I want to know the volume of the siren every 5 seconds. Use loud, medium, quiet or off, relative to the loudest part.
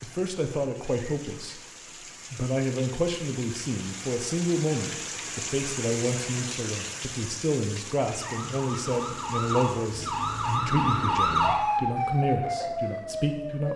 off, medium, loud.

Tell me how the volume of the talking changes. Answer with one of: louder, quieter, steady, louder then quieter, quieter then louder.
steady.